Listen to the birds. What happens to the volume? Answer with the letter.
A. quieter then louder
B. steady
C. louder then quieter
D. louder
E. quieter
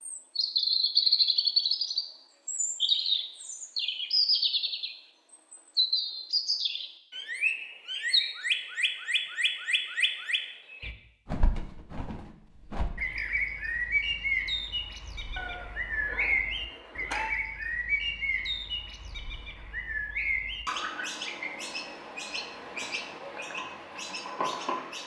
E.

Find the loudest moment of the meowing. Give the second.
17 s.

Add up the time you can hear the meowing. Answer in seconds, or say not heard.
2 s.